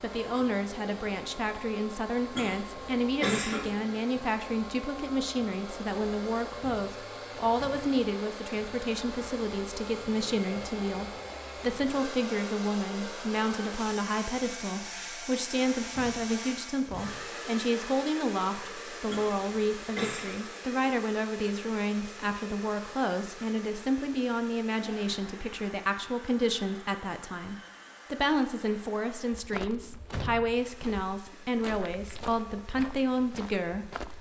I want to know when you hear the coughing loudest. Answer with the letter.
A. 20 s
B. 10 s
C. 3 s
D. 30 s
C.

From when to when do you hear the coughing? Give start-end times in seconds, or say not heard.
2.4-3.7, 19.1-20.4.